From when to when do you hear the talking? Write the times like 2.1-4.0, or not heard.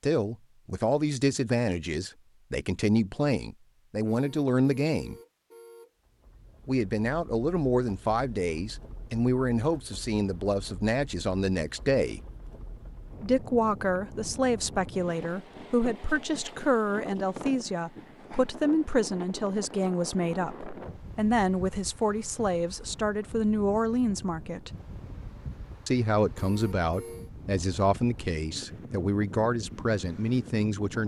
0.0-5.2, 6.7-12.2, 13.2-24.8, 25.9-31.0.